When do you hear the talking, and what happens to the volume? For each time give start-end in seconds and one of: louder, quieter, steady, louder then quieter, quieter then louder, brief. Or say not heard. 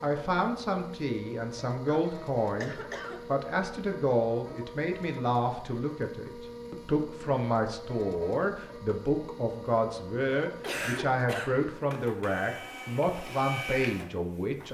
0.0-14.7 steady.